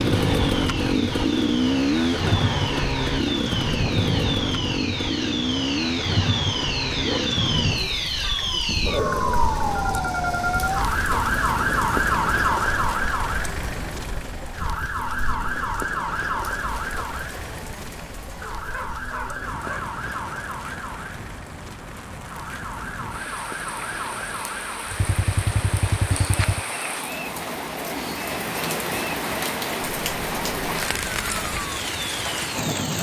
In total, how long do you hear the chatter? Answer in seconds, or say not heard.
not heard.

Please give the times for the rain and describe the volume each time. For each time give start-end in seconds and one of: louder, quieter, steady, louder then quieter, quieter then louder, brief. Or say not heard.
0.0-32.9 quieter then louder.